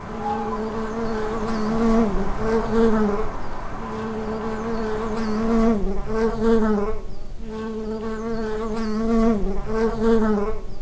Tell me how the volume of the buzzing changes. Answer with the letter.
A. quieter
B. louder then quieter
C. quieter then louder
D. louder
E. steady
E.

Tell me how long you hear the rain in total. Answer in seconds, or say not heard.
6 s.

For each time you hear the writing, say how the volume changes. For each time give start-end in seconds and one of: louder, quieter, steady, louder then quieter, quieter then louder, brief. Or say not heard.
not heard.